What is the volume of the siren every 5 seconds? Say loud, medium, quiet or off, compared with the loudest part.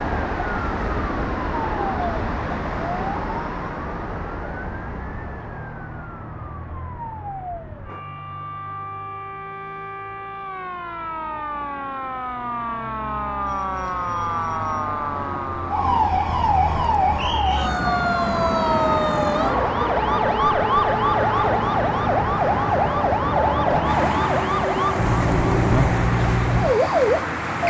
quiet, quiet, medium, loud, loud, loud.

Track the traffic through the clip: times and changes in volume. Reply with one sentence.
The traffic can be heard from 0.0 to 27.6 s, getting quieter then louder.